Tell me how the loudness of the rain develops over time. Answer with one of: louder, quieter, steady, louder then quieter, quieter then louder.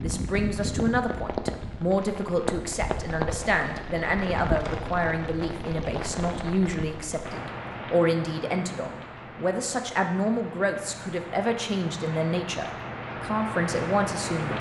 quieter then louder.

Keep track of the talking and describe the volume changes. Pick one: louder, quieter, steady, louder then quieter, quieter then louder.
steady.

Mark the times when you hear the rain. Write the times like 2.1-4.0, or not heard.
0.0-14.5.